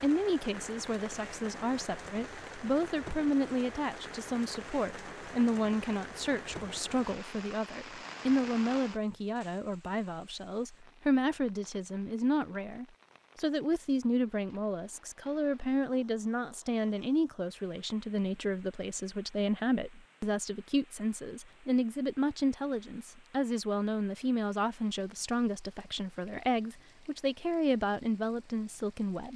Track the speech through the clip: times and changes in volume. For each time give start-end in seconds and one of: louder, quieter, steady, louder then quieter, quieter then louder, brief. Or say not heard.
0.0-29.3 steady.